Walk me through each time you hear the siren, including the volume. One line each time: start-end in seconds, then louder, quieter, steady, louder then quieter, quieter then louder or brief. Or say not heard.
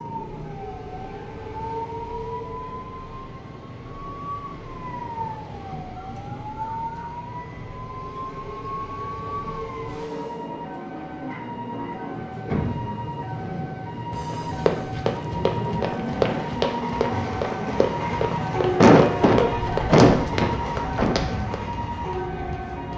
0.0-22.9 louder.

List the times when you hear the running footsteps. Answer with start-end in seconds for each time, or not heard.
14.2-21.6.